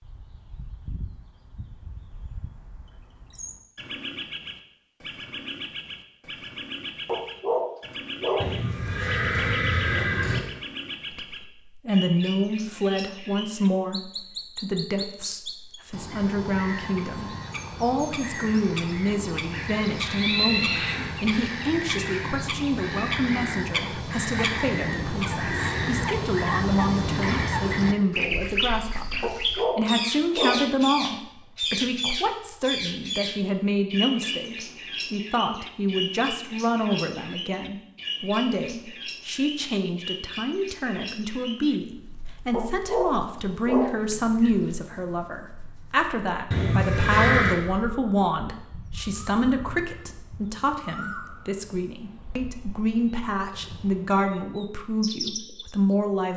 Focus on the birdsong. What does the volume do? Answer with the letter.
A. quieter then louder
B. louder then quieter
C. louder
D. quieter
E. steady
B.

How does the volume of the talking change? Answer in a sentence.
The loudness of the talking stays about the same.